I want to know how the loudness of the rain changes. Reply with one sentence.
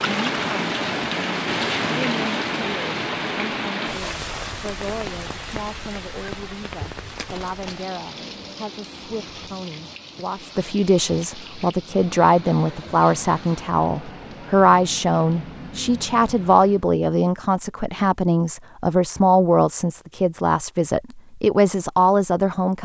The loudness of the rain goes down.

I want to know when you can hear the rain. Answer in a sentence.
The rain can be heard from 0.0 to 16.9 s.